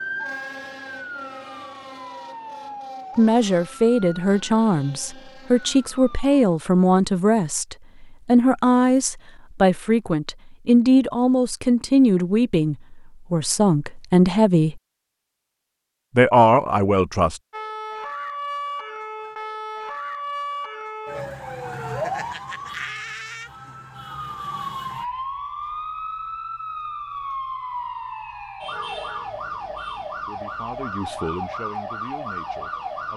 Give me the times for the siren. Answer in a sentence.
The siren can be heard from 0.0 to 6.6 s and from 17.5 to 33.1 s.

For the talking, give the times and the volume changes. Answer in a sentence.
The talking can be heard from 3.1 to 14.8 s, at a steady volume; briefly from 16.1 to 17.4 s; and briefly from 30.2 to 33.1 s.